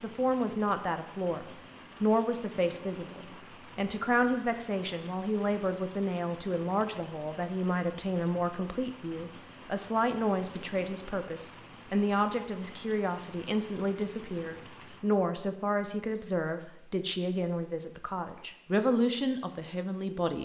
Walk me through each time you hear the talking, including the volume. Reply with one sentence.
The talking can be heard from 0.0 to 20.4 s, at a steady volume.